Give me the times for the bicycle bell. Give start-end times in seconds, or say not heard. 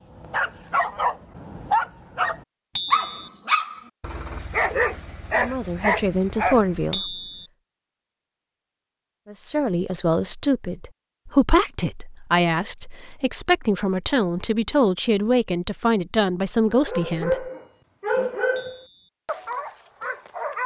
2.8-3.3, 6.9-7.5, 18.6-19.1.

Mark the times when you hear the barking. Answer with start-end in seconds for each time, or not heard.
0.1-7.0, 16.7-20.6.